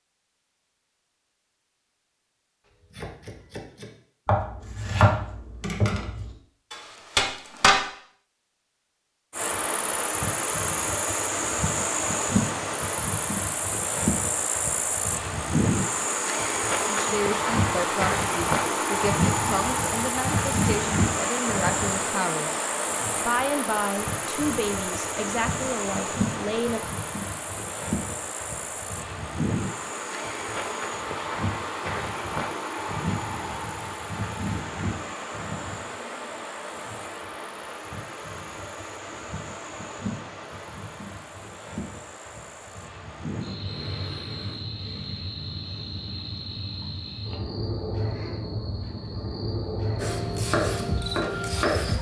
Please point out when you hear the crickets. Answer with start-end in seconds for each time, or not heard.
9.3-51.9.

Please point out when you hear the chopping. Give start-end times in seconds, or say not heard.
2.9-7.8, 50.0-51.9.